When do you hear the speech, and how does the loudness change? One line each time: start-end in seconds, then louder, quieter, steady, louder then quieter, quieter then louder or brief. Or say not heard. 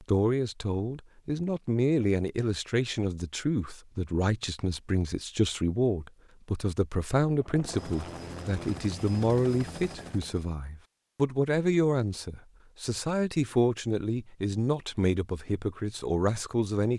0.0-16.9 steady.